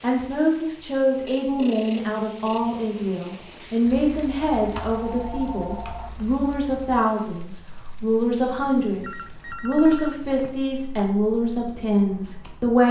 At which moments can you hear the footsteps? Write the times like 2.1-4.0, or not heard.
not heard.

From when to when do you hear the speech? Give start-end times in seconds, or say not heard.
0.0-12.8.